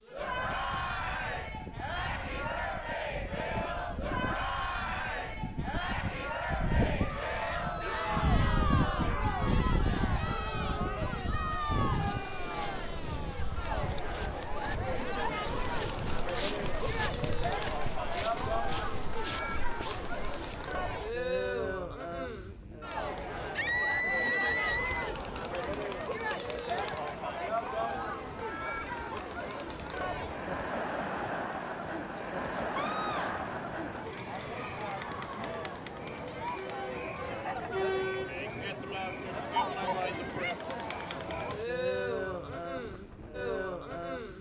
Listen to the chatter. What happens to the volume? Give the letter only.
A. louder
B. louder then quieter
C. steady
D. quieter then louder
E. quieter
C.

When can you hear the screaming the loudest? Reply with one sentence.
The loudest moment of the screaming is at 24 seconds.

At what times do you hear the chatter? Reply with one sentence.
You can hear the chatter from 0.0 to 44.3 s.